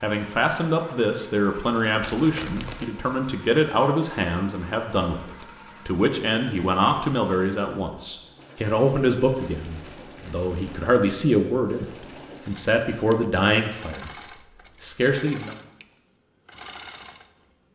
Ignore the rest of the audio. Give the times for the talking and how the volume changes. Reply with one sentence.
The talking can be heard from 0.0 to 14.1 s, at a steady volume; and briefly from 14.8 to 15.6 s.